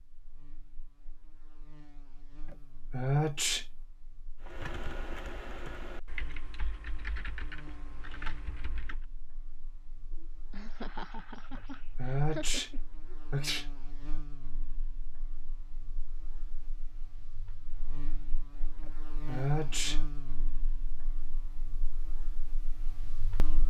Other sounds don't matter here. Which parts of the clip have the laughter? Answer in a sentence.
You can hear the laughter from 10.1 to 12.8 s.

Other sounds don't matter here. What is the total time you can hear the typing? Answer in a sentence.
You can hear the typing for 5 seconds altogether.